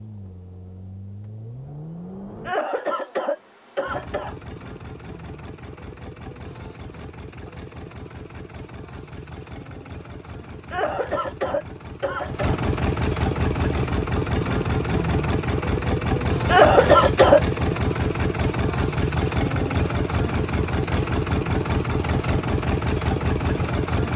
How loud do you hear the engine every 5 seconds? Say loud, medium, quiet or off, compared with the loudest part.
quiet, quiet, loud, loud, loud.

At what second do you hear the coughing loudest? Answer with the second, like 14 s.
17 s.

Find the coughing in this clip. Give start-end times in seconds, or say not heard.
2.4-4.3, 10.7-12.6, 16.4-17.4.